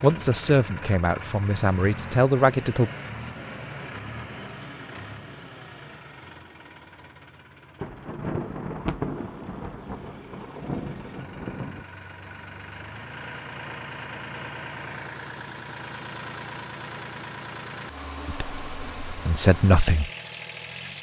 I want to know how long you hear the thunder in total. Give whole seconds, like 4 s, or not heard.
4 s.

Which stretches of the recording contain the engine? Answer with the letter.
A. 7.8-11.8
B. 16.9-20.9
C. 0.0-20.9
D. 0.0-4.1
C.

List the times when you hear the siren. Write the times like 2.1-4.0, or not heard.
not heard.